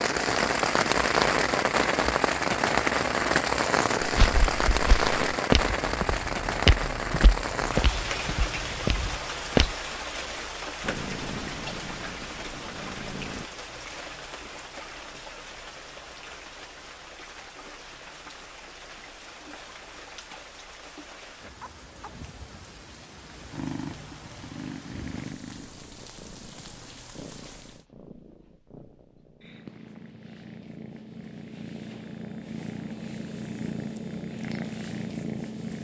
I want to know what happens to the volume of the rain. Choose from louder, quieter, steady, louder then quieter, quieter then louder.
quieter.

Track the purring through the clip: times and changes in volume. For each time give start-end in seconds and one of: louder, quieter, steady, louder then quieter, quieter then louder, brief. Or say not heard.
10.8-13.4 brief
23.5-35.7 quieter then louder.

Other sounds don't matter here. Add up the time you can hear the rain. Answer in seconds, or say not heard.
28 s.